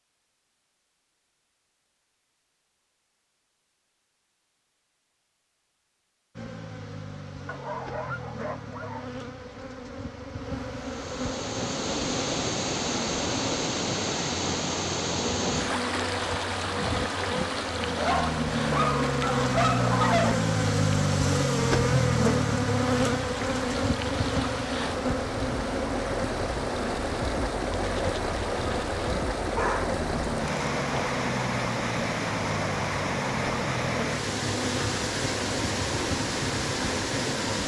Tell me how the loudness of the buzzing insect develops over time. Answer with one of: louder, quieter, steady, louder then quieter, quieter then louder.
louder then quieter.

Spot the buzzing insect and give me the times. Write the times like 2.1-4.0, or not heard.
6.3-37.6.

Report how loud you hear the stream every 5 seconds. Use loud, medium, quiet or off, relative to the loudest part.
off, off, loud, loud, medium, loud, loud, loud.